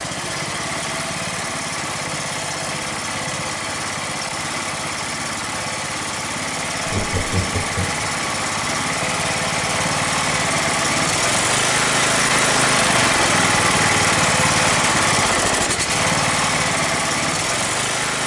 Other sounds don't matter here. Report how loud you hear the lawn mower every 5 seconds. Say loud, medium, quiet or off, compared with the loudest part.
medium, medium, loud, loud.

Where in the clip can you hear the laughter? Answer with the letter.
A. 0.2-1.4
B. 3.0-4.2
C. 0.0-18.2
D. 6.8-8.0
D.